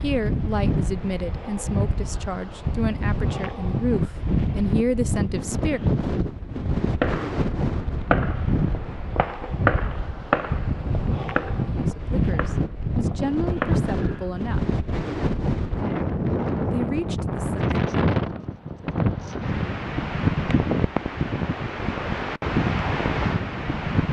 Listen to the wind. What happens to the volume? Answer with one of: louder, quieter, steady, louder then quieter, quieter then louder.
steady.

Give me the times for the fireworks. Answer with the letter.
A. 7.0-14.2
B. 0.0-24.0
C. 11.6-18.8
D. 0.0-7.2
A.